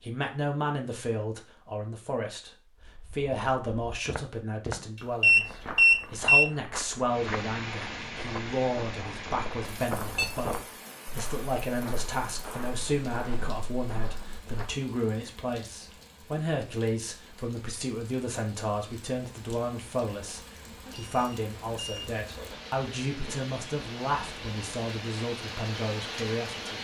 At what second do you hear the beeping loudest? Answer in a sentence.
The volume of the beeping peaks at 6 seconds.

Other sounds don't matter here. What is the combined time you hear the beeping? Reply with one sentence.
The beeping can be heard for 3 seconds in total.